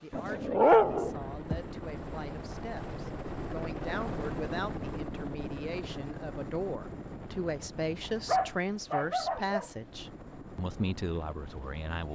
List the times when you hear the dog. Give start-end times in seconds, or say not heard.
0.1-1.6, 8.2-9.7.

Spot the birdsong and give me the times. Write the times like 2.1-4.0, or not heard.
not heard.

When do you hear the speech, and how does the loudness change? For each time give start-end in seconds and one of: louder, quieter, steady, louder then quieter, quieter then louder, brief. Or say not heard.
0.0-12.1 louder.